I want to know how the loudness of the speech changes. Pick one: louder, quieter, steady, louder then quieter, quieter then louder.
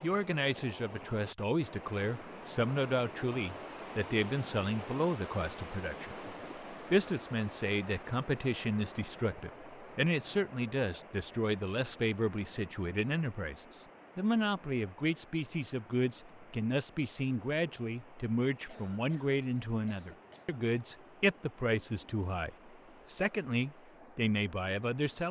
steady.